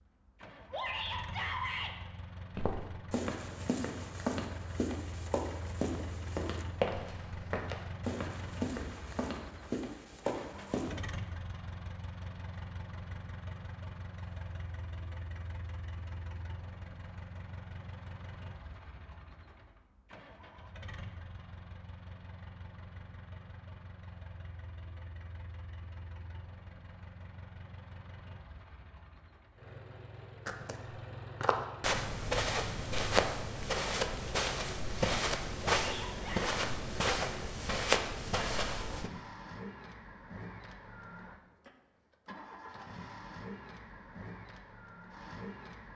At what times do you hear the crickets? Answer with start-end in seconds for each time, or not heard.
not heard.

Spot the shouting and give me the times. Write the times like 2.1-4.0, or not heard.
0.7-1.9, 35.9-36.5.